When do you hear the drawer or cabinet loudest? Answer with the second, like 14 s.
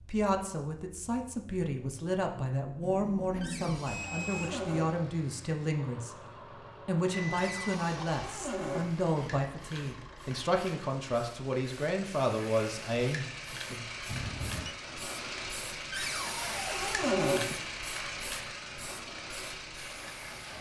17 s.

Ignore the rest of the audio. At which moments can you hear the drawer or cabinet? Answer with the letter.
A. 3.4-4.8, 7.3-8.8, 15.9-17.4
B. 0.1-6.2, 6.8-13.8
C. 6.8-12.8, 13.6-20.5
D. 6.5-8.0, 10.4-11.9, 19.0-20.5
A.